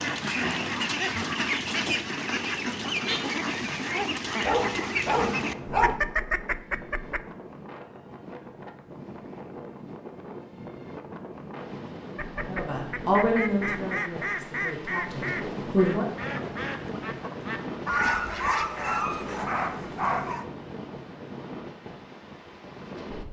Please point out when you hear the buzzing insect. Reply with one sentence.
You can't hear the buzzing insect here.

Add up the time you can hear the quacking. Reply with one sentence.
The quacking can be heard for 14 seconds in total.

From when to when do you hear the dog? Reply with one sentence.
The dog can be heard from 4.4 to 6.0 s and from 17.9 to 20.4 s.